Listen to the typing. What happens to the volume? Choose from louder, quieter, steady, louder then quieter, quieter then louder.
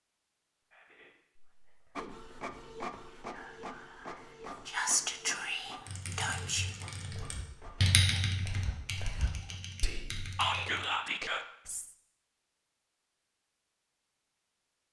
louder then quieter.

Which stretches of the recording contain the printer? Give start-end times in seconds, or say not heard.
1.9-9.6.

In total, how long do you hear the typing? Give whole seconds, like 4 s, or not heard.
5 s.